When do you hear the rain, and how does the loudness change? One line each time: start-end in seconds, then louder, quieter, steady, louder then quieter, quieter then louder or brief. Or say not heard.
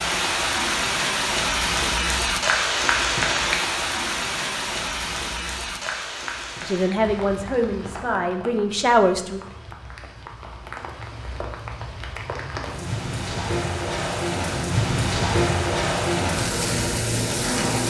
0.0-17.8 quieter then louder.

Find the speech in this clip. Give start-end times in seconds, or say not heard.
6.7-9.4.